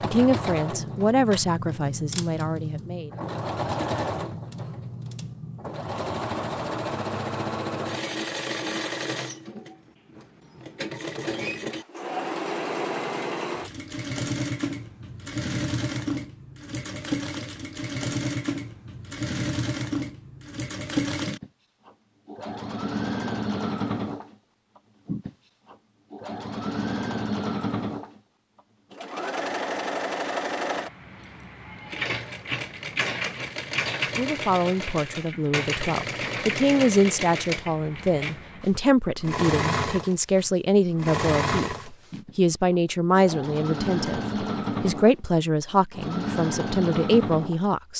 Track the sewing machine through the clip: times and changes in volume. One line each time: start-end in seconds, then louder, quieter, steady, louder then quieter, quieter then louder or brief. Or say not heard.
0.0-47.7 steady.